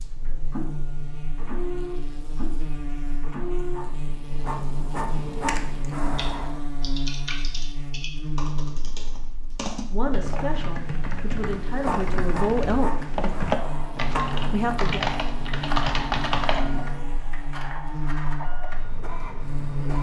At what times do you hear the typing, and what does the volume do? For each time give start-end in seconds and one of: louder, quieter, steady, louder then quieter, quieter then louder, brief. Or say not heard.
5.3-17.1 louder.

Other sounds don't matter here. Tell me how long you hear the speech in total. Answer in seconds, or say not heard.
4 s.